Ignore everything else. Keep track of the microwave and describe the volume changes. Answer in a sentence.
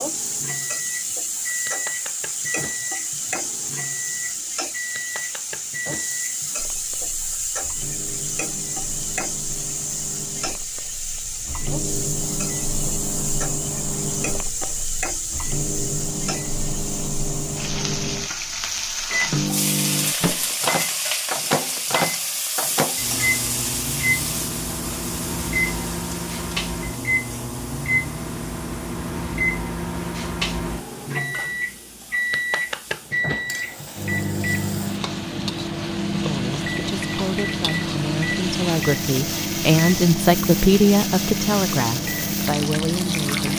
The loudness of the microwave goes up.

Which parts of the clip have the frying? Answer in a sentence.
The frying can be heard from 0.0 to 43.5 s.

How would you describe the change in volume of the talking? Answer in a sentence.
The volume of the talking goes up, then down.